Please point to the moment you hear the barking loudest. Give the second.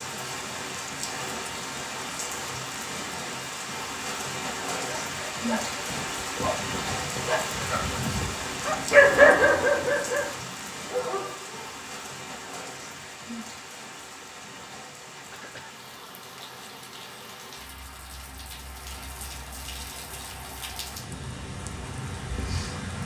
9 s.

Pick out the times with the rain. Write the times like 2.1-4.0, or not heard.
0.0-23.0.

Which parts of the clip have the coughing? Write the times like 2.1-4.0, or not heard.
15.3-15.8.